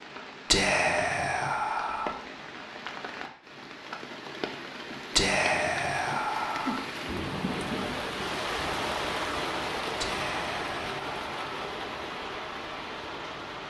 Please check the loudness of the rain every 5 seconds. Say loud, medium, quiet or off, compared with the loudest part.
medium, loud, loud.